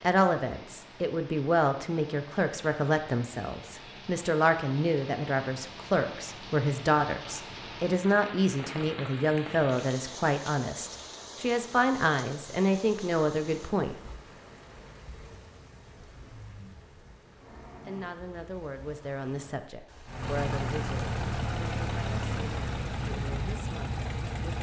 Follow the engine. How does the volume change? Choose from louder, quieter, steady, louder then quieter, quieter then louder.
steady.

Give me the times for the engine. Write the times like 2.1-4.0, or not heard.
20.1-24.5.